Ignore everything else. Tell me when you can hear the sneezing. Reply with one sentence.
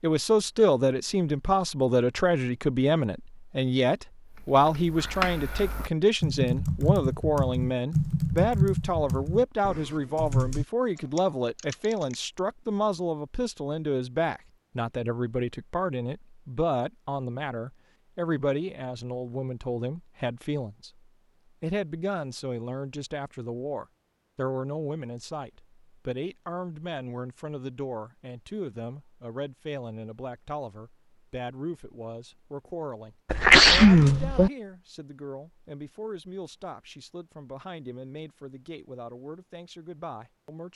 You can hear the sneezing from 33.3 to 34.5 s.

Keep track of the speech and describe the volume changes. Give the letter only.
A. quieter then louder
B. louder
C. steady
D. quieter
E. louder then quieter
D.